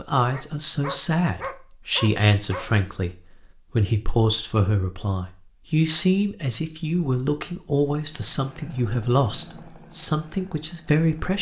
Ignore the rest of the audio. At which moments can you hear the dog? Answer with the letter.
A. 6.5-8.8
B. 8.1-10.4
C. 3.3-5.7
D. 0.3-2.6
D.